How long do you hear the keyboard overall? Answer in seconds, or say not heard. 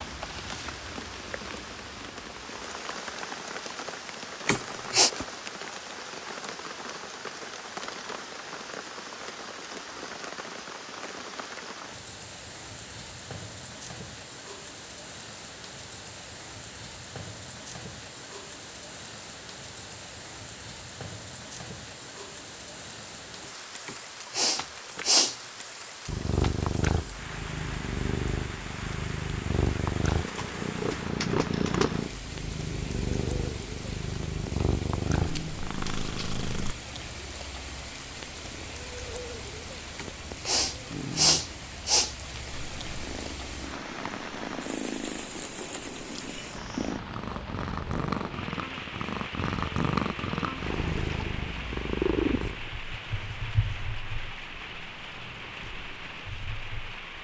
2 s.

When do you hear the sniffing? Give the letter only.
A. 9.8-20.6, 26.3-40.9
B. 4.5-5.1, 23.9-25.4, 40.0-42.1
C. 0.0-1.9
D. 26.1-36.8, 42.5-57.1
B.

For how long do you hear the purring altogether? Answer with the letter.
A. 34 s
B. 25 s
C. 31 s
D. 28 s
B.